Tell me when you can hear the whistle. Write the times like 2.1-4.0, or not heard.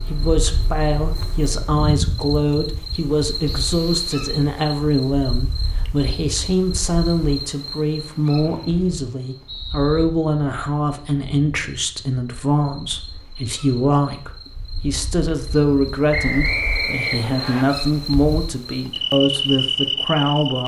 3.5-4.1, 8.4-10.1, 16.1-17.6.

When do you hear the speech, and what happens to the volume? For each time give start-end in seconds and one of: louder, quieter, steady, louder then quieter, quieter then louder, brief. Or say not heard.
0.1-20.6 steady.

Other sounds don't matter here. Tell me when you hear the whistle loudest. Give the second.
17 s.